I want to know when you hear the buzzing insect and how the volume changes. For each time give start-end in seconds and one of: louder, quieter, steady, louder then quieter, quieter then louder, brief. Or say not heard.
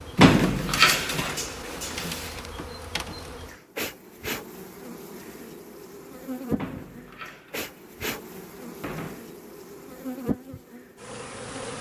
0.0-11.7 steady.